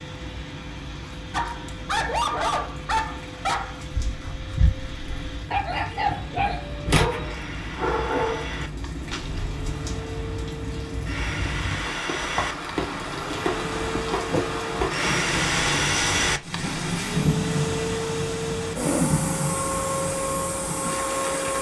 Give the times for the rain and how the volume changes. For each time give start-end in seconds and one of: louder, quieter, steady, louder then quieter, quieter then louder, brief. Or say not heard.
0.0-21.5 louder.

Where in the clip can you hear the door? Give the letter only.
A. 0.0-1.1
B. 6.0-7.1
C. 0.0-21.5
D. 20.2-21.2
B.